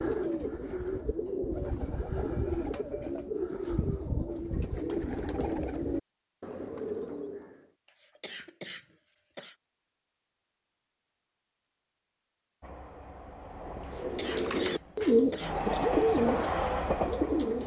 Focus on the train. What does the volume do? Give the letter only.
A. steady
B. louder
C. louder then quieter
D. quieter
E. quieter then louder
B.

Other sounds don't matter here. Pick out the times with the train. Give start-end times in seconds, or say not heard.
12.6-17.6.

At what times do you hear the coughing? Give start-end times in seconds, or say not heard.
1.6-3.2, 7.8-9.6, 13.8-15.6.